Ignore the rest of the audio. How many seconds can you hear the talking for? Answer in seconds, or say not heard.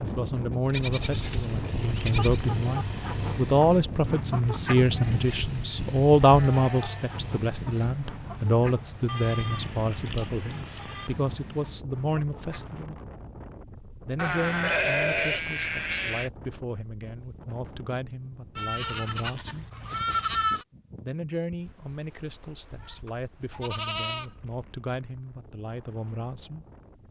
24 s.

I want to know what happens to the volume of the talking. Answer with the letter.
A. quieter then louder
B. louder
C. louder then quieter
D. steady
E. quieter
E.